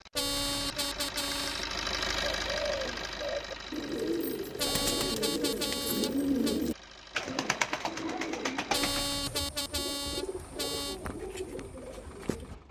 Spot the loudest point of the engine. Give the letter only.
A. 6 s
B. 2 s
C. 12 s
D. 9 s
B.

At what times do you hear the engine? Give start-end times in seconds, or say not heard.
0.0-12.6.